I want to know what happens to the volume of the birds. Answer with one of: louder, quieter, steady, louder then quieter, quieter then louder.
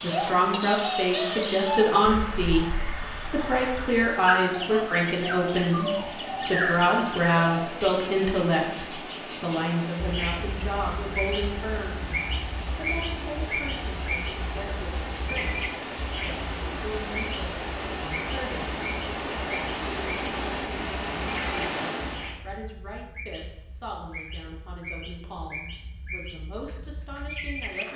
quieter.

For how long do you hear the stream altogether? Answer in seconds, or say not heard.
22 s.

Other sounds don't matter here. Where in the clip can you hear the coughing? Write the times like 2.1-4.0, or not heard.
not heard.